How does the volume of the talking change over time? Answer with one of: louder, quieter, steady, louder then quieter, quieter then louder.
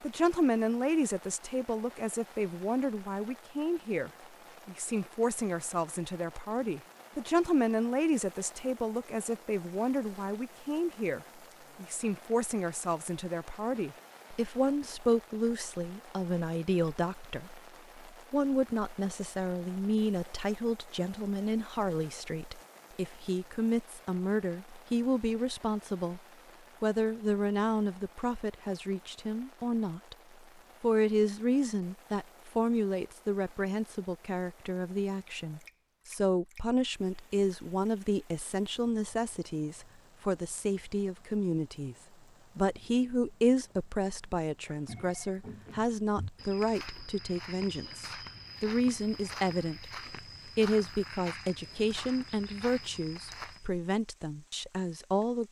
steady.